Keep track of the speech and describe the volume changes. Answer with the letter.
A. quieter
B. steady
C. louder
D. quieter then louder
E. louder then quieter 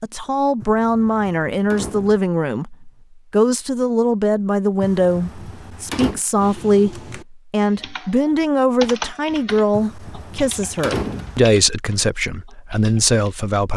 B.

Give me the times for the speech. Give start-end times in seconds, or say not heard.
0.0-13.7.